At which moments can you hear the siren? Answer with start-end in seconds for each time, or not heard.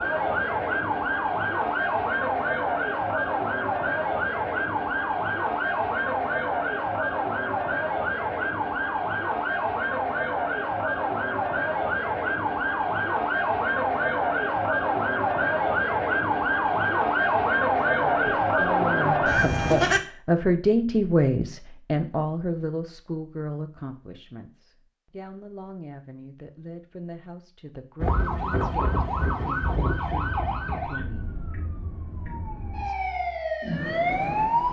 0.0-20.0, 27.9-34.6.